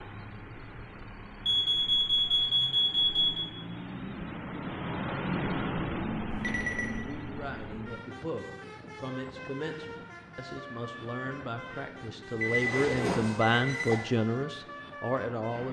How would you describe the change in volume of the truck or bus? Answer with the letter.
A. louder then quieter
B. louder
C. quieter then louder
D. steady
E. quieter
A.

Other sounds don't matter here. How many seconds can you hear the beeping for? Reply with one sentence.
You can hear the beeping for 4 seconds altogether.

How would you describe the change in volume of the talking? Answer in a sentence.
The loudness of the talking goes up.